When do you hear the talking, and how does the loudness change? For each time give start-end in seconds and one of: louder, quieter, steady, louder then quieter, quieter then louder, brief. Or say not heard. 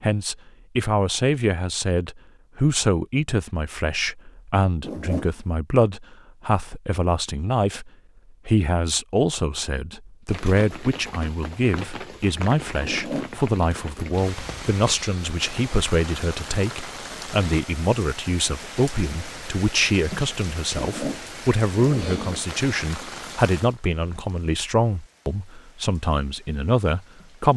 0.0-27.5 steady.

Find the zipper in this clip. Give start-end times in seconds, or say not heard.
4.8-5.3, 12.8-13.3, 20.8-22.4.